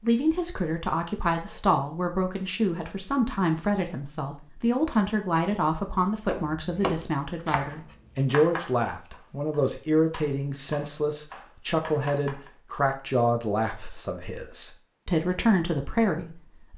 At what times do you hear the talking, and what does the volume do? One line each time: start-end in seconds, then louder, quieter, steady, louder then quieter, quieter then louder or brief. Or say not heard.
0.0-16.7 steady.